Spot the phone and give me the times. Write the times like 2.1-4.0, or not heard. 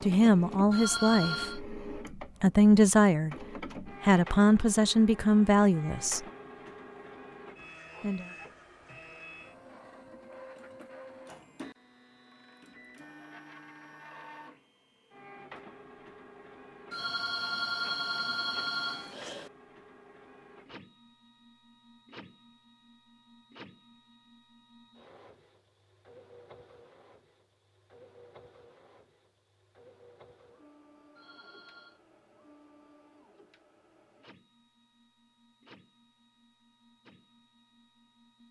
0.7-1.6, 16.9-19.5, 31.1-32.0.